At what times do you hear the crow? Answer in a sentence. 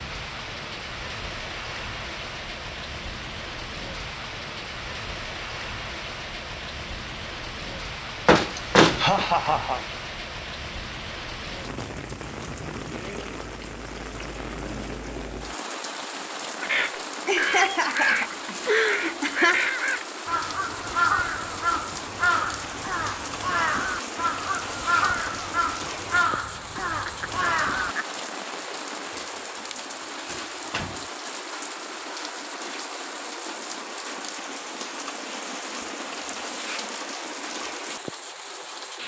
You can hear the crow from 16.6 to 27.9 s.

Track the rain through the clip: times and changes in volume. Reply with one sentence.
The rain can be heard from 0.0 to 39.0 s, at a steady volume.